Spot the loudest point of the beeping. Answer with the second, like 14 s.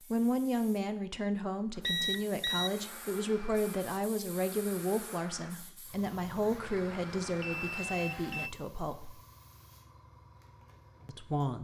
2 s.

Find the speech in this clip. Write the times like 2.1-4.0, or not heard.
0.0-9.2, 11.1-11.5.